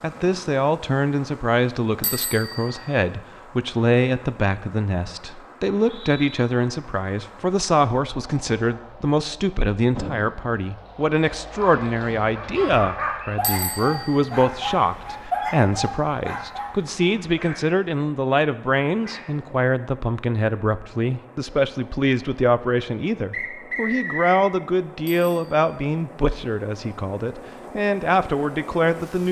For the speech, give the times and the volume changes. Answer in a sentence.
You can hear the speech from 0.0 to 29.2 s, at a steady volume.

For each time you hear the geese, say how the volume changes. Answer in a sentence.
You can't hear the geese here.